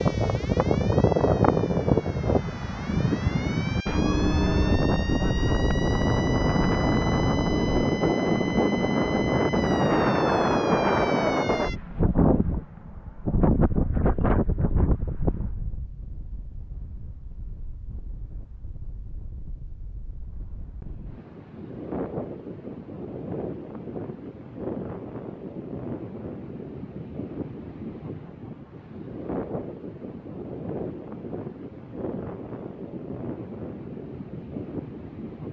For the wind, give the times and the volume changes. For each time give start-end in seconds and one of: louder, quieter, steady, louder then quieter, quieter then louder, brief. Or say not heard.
0.0-35.4 quieter.